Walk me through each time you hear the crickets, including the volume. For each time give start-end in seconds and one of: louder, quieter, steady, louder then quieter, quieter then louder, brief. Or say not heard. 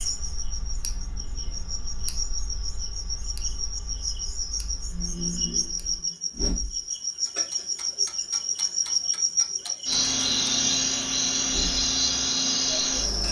0.0-13.2 louder.